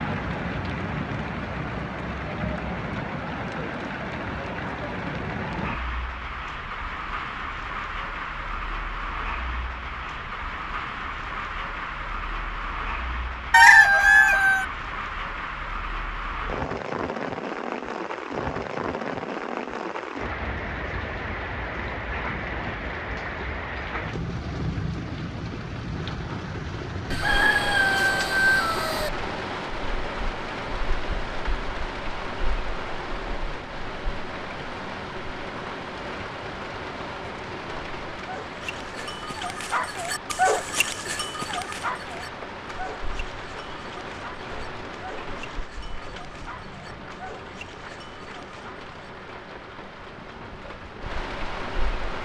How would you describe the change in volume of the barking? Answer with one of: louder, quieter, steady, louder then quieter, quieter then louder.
quieter.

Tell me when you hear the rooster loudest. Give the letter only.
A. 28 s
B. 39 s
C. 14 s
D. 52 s
C.